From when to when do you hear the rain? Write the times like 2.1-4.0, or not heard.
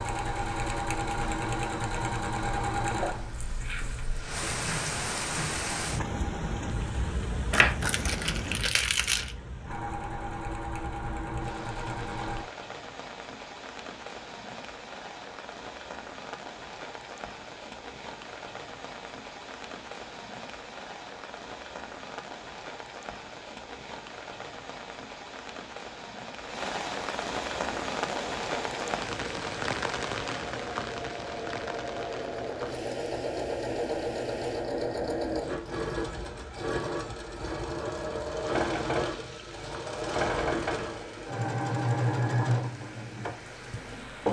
0.0-44.2.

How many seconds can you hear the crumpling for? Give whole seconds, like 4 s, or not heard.
2 s.